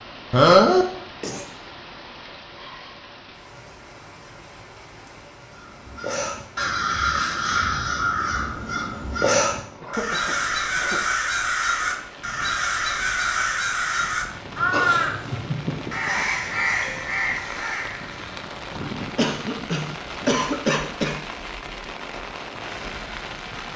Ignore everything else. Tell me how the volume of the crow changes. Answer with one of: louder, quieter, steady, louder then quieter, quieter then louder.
steady.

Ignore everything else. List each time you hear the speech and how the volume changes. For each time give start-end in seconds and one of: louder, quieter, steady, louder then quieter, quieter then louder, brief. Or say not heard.
not heard.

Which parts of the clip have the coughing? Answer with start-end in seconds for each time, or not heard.
0.3-1.4, 9.8-11.0, 19.1-21.1.